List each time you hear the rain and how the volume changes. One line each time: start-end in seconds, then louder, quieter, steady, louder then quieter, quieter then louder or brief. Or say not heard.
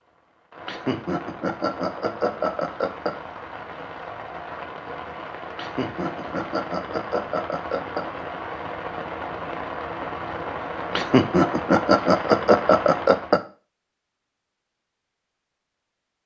0.0-13.4 louder.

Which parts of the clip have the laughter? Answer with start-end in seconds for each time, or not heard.
0.7-3.1, 5.5-8.2, 10.9-13.4.